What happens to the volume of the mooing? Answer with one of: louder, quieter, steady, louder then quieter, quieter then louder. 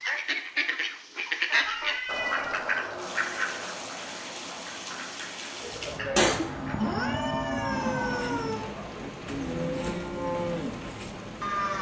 quieter then louder.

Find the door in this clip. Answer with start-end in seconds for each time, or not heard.
not heard.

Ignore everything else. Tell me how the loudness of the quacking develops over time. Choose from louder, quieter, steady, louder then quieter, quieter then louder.
quieter.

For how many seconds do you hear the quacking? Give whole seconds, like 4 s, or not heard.
7 s.